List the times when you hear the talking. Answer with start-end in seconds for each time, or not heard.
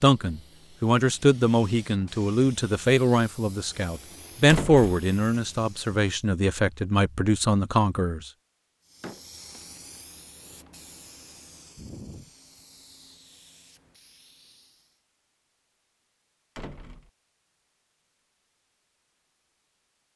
0.0-8.3.